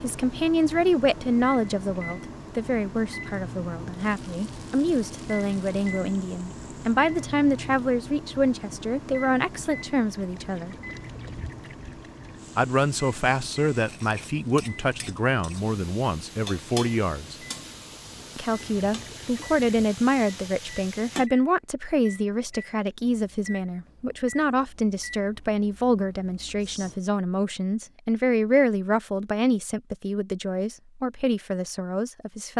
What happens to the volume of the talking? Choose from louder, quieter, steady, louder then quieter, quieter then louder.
steady.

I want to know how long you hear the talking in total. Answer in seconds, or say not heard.
30 s.